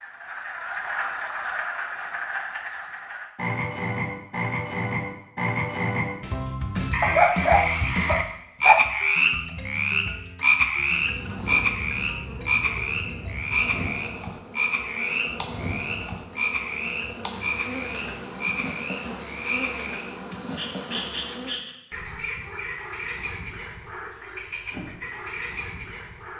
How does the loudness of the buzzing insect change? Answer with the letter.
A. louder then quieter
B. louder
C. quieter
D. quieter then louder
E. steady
E.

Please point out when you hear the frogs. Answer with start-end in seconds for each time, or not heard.
0.0-26.3.